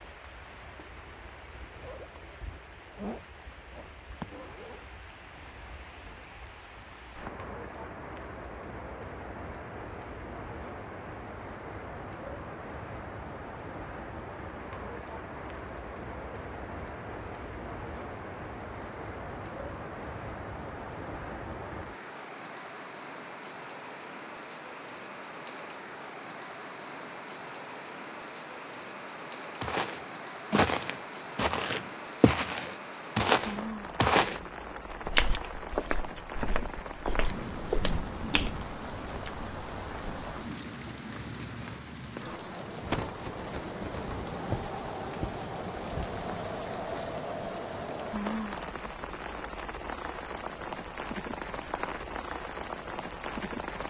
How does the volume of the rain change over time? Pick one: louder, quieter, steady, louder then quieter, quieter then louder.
louder.